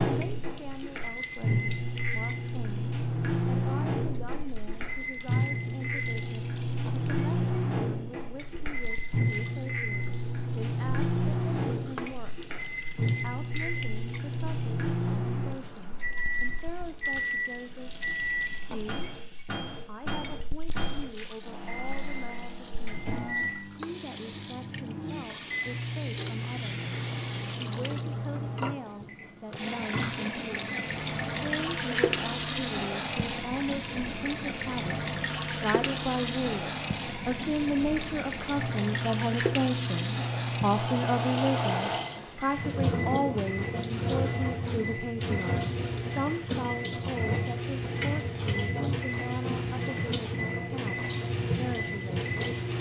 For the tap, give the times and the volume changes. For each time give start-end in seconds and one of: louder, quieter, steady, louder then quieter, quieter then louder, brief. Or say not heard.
0.0-52.7 louder.